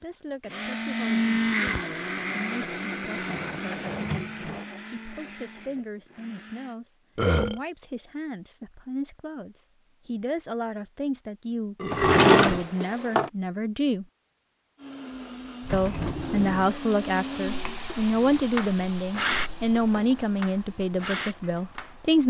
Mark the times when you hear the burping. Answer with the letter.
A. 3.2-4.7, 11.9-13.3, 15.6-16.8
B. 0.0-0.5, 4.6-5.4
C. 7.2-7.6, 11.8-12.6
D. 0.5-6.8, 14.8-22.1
C.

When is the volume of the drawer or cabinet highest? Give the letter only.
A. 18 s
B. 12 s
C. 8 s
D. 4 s
B.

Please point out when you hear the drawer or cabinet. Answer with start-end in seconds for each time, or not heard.
3.2-4.7, 11.9-13.3, 15.6-16.8.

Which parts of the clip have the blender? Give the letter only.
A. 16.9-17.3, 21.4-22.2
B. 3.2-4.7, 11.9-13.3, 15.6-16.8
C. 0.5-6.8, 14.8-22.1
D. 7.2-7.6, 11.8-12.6
C.